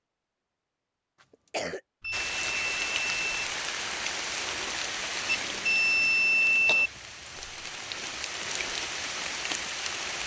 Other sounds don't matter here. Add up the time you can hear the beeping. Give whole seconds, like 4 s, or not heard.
3 s.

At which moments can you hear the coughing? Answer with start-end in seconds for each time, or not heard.
1.2-1.8, 6.7-8.2.